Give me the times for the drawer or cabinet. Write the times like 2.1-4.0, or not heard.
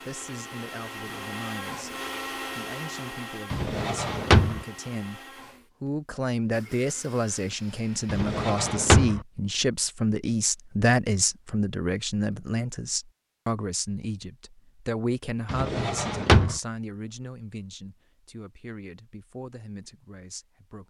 3.5-4.7, 8.1-9.2, 15.4-16.6.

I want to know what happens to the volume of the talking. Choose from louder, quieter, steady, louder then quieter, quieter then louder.
louder then quieter.